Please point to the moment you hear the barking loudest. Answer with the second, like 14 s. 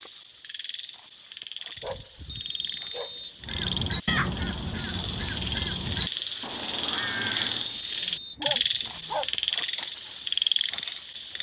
9 s.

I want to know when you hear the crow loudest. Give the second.
4 s.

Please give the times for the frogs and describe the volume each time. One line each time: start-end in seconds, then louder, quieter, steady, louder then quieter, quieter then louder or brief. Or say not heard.
0.0-11.3 louder.